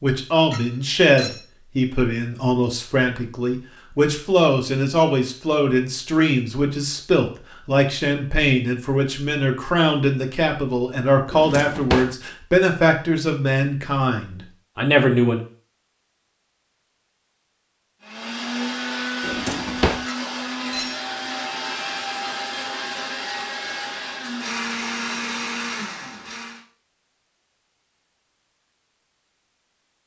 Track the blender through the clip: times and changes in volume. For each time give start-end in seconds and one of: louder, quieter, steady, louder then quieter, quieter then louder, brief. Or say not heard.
18.0-26.6 steady.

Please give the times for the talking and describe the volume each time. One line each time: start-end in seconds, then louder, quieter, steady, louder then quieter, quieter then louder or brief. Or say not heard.
0.0-15.4 steady.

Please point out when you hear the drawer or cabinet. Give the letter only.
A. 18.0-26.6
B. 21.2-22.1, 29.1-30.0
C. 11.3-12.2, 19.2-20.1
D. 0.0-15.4
C.